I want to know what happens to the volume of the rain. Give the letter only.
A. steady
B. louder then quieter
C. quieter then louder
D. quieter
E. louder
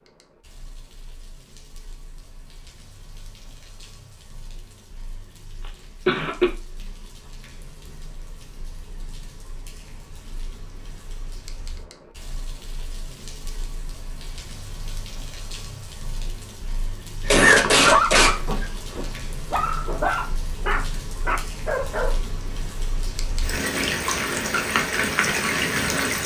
E.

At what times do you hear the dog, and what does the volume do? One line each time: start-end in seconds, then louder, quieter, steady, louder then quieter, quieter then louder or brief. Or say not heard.
17.4-22.2 quieter then louder.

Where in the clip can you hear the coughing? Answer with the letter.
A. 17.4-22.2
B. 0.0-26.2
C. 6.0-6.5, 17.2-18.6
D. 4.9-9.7
C.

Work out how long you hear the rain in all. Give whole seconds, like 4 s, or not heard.
26 s.